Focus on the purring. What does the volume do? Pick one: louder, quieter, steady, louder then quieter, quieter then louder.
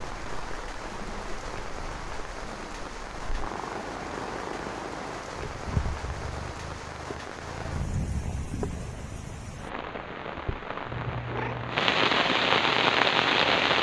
louder.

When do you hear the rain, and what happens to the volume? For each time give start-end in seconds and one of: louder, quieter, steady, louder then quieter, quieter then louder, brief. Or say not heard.
0.0-13.7 louder.